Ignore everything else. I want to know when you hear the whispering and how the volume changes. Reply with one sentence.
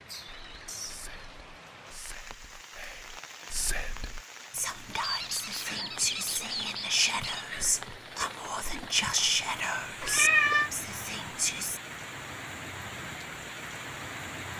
You can hear the whispering from 0.2 to 11.8 s, getting louder.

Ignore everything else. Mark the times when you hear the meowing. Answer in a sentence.
You can hear the meowing from 10.0 to 10.7 s.